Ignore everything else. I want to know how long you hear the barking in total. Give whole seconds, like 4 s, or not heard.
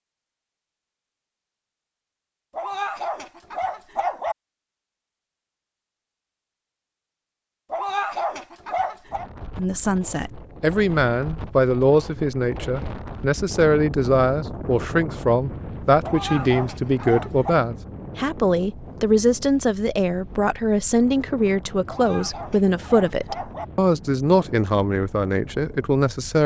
7 s.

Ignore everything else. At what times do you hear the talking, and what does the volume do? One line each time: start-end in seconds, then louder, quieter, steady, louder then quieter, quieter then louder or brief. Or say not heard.
9.6-26.4 steady.